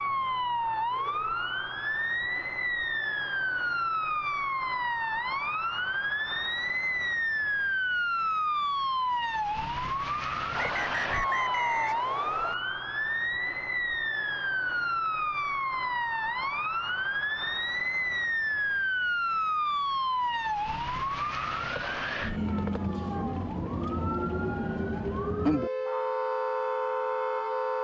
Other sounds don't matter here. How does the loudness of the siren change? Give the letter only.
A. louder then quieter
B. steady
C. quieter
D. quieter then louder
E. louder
B.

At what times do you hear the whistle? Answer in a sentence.
The whistle can be heard from 10.6 to 12.6 s.